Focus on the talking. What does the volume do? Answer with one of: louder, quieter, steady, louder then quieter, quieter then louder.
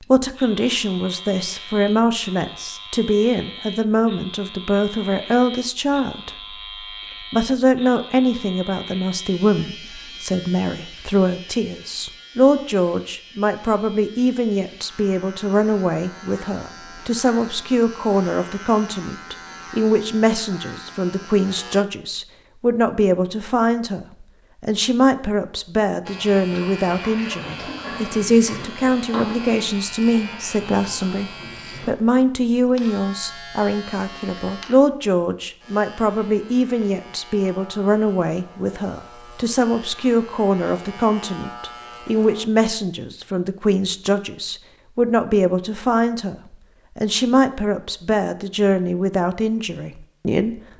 steady.